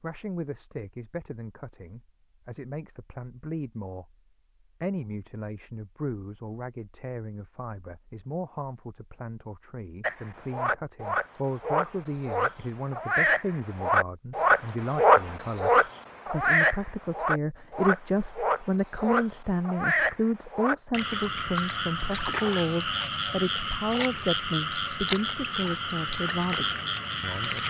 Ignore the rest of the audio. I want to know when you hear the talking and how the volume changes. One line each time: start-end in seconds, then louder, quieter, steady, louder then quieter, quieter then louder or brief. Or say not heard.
0.0-4.2 quieter then louder
4.8-27.6 louder.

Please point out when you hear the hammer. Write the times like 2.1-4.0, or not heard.
not heard.